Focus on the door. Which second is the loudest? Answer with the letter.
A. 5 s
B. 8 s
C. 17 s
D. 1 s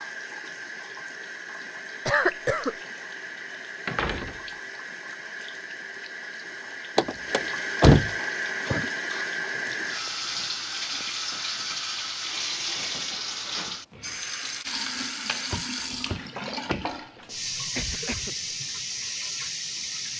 B.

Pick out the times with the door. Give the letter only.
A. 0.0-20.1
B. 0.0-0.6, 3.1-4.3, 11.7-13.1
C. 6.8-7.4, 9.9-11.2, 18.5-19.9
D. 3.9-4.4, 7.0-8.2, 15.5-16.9
D.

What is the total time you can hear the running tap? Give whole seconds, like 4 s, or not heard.
20 s.